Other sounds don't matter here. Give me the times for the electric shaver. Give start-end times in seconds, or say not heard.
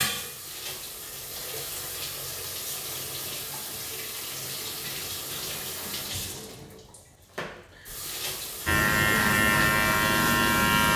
8.7-10.9.